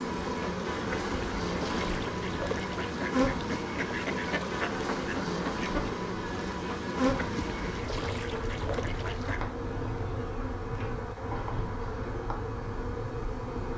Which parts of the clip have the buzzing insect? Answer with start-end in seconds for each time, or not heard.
0.0-13.7.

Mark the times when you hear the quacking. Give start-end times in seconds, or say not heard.
0.1-9.4.